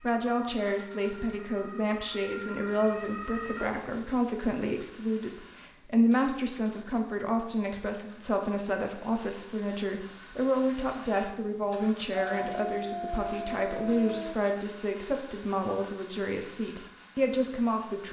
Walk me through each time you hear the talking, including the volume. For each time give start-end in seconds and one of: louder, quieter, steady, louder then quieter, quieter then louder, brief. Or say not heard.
0.0-18.0 steady.